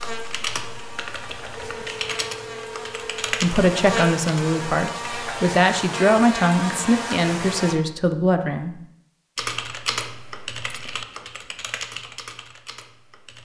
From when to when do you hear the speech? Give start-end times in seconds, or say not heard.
3.3-8.8.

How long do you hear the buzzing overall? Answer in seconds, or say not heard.
8 s.